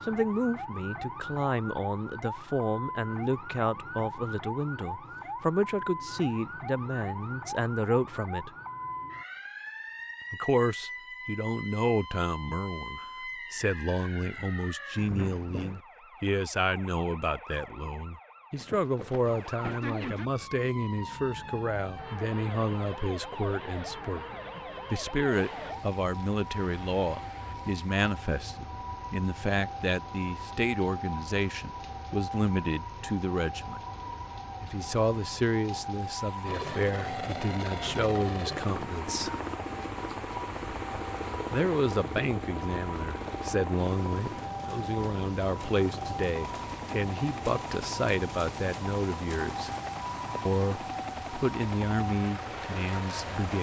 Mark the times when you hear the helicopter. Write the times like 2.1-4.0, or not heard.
36.5-53.5.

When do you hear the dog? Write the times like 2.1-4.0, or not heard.
not heard.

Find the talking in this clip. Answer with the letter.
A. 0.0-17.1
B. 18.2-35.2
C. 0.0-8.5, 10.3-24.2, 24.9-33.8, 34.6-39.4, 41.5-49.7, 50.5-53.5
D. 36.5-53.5
C.